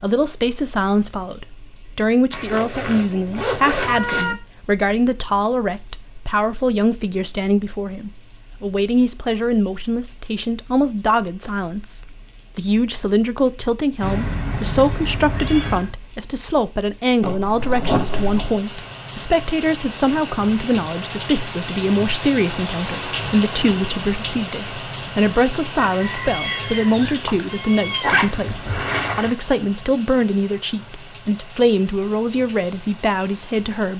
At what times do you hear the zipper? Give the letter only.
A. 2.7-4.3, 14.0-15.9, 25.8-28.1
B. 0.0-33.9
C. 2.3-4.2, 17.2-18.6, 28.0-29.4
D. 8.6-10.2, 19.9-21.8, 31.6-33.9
C.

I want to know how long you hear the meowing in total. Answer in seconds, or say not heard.
6 s.